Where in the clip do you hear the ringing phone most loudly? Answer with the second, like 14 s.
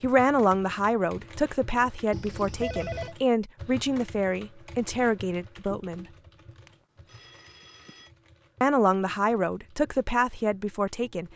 3 s.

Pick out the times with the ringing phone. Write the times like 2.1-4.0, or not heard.
2.1-3.1, 6.7-8.1.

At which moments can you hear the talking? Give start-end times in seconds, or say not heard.
0.0-6.0, 8.6-11.3.